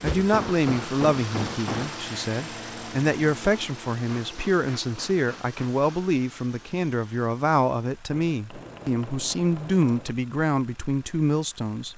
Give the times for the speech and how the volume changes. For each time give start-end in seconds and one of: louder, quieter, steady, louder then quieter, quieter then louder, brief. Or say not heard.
0.0-11.9 steady.